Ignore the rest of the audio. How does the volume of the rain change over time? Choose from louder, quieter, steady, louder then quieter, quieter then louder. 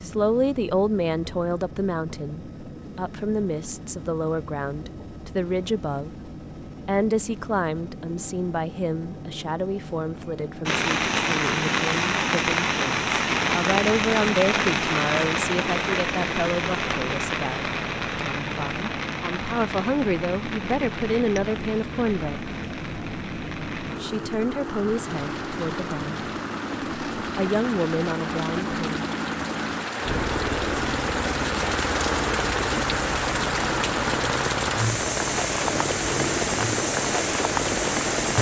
quieter then louder.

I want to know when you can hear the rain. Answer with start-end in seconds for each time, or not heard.
10.7-38.3.